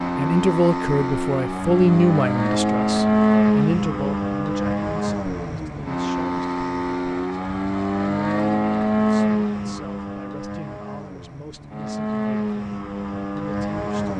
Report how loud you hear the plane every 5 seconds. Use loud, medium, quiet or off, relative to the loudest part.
loud, loud, medium.